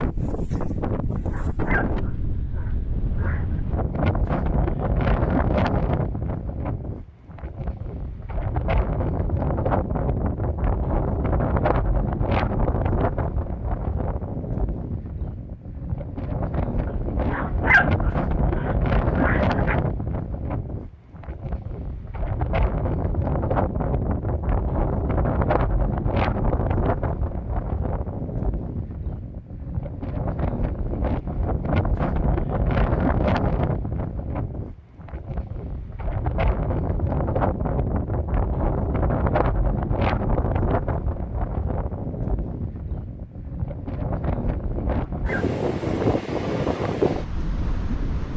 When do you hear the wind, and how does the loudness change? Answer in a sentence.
The wind can be heard from 0.0 to 48.3 s, at a steady volume.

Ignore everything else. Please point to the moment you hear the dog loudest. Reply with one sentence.
The volume of the dog peaks at 18 seconds.